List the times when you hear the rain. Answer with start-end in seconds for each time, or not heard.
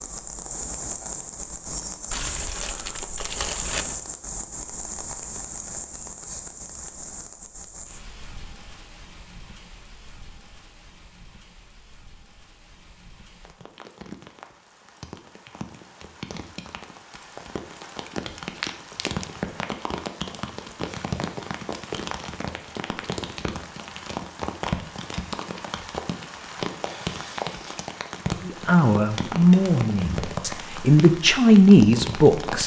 0.0-32.6.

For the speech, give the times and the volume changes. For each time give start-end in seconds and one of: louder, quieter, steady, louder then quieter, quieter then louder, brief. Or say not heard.
28.4-32.6 quieter then louder.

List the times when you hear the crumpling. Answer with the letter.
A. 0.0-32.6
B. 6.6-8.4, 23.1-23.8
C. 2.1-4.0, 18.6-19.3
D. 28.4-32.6
C.